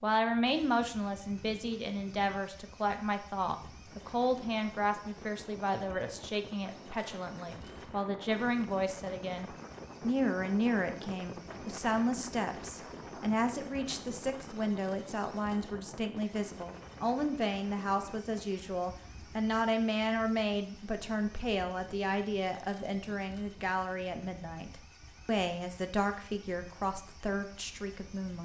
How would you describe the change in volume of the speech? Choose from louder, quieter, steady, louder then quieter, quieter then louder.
steady.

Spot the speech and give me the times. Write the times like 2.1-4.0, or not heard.
0.0-28.3.